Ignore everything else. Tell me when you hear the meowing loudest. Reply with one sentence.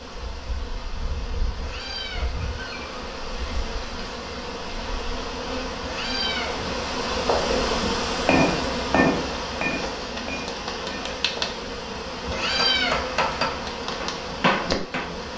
The volume of the meowing peaks at 13 seconds.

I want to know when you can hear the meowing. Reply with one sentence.
The meowing can be heard from 1.6 to 3.0 s, from 5.8 to 6.7 s and from 12.2 to 13.0 s.